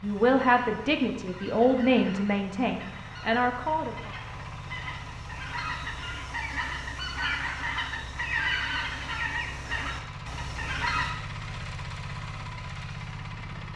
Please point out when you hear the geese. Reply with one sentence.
You can hear the geese from 0.0 to 11.2 s.